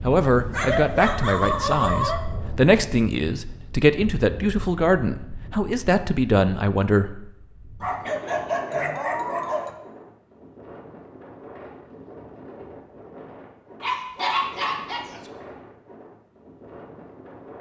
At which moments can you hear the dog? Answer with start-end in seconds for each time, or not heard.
0.3-2.2, 7.8-9.8, 13.8-15.3.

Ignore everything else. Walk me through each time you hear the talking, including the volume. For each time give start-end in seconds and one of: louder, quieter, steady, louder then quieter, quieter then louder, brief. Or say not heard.
0.0-7.3 steady.